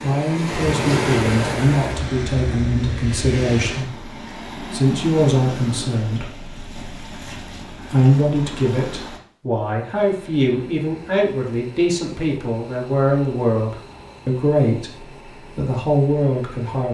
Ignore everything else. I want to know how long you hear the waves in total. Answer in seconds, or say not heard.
9 s.